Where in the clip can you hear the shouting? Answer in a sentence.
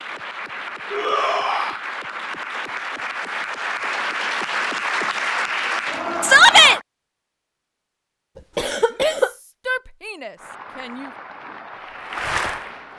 You can hear the shouting from 0.9 to 1.8 s, from 6.2 to 6.8 s and from 8.9 to 11.1 s.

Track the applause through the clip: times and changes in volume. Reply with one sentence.
You can hear the applause from 0.0 to 6.8 s, getting louder; and briefly from 10.3 to 12.9 s.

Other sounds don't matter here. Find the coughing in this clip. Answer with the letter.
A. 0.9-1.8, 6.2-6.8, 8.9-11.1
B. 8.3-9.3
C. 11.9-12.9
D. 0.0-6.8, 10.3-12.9
B.